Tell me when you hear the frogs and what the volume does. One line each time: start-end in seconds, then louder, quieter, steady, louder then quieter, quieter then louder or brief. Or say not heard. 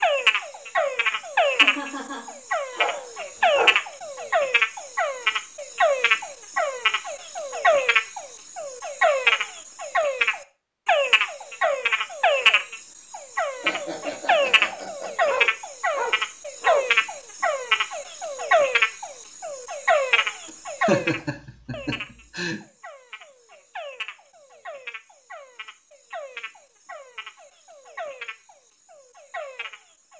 0.0-30.1 quieter.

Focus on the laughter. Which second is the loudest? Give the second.
21 s.